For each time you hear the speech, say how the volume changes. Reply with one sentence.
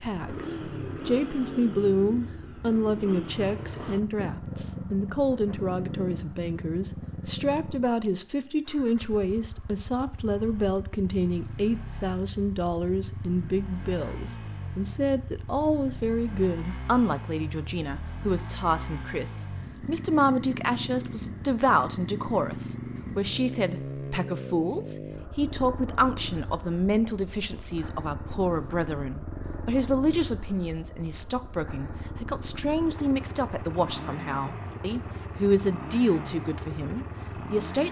The speech can be heard from 0.0 to 37.8 s, at a steady volume.